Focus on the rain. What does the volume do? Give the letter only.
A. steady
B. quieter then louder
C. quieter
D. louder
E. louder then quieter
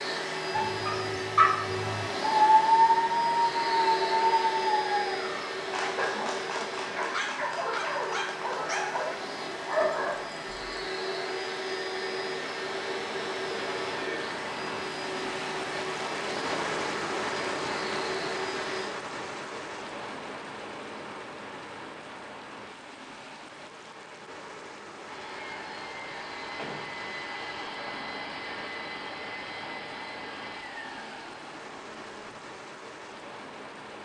E.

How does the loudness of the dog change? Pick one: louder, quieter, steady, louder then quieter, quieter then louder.
louder then quieter.